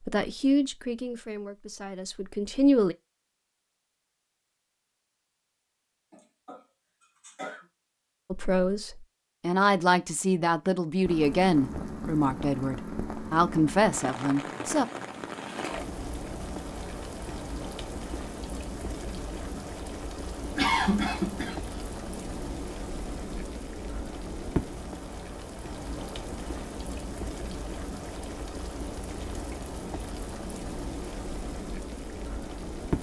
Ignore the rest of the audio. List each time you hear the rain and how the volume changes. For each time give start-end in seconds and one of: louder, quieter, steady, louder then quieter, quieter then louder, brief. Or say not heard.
11.1-32.9 steady.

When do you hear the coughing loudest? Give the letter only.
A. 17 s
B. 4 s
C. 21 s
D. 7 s
C.